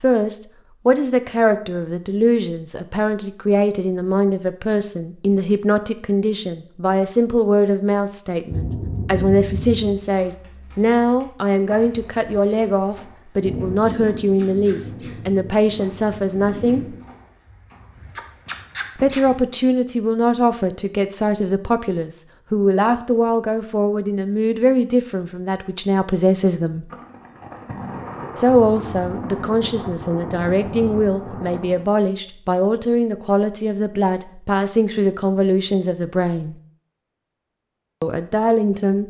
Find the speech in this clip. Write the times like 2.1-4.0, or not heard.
0.0-16.9, 18.9-26.9, 28.4-36.5, 38.0-39.0.